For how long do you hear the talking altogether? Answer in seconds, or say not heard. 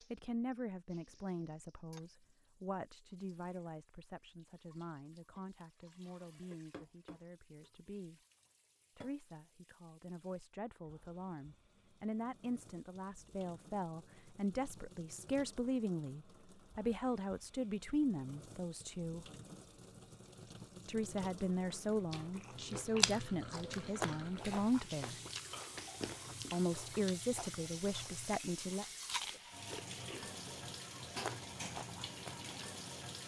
25 s.